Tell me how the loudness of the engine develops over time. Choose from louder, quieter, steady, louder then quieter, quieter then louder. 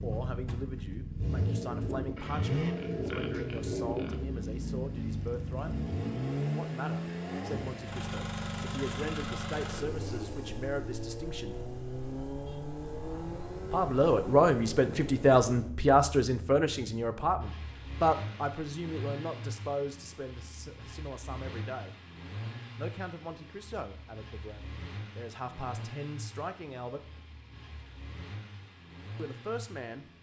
quieter.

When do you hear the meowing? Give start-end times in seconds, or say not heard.
not heard.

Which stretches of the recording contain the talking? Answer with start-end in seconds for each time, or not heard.
0.0-5.8, 6.5-11.6, 13.7-21.9, 22.8-27.1, 29.1-30.1.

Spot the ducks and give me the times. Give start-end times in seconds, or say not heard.
not heard.